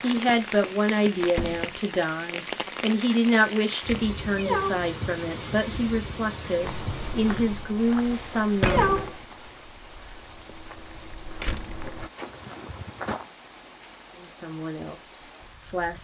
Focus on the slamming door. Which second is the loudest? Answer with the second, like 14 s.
9 s.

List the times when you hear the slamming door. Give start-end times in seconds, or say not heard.
1.2-1.7, 8.6-9.1, 11.4-11.8.